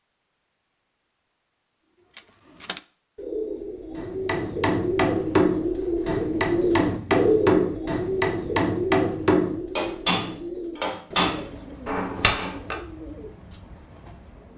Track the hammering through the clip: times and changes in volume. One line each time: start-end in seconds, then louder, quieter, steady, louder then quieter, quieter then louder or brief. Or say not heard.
4.0-12.8 steady.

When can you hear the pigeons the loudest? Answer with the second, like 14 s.
7 s.